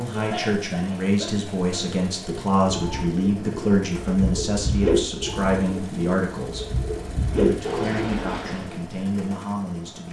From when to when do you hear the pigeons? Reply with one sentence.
You can hear the pigeons from 2.2 to 8.8 s.